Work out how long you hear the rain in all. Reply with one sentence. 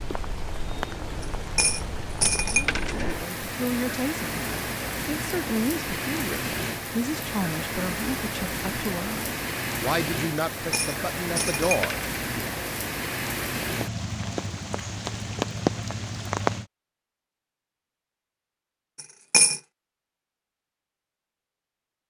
The rain can be heard for 17 seconds in total.